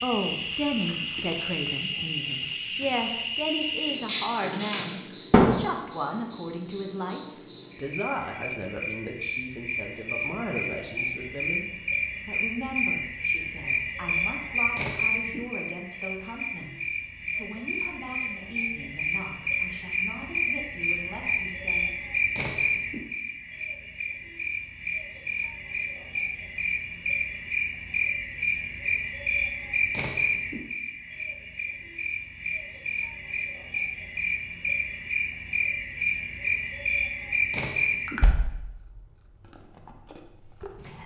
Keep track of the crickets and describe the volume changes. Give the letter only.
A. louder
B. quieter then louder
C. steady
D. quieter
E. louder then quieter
C.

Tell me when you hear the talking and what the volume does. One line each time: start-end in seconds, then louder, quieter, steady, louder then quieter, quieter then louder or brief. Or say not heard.
0.0-21.9 quieter.